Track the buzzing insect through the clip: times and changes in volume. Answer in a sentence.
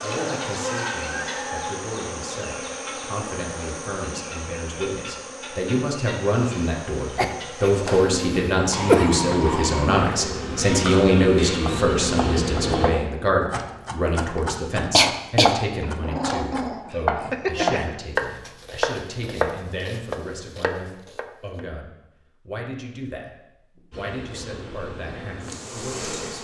The buzzing insect can be heard from 0.0 to 12.9 s, getting quieter then louder; and briefly from 23.9 to 26.3 s.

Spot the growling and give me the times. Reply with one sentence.
You can hear the growling from 8.7 to 9.9 s and from 16.0 to 17.9 s.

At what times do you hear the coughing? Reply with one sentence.
The coughing can be heard from 7.2 to 9.2 s and from 14.9 to 15.6 s.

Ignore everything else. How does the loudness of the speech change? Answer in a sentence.
The loudness of the speech goes up, then down.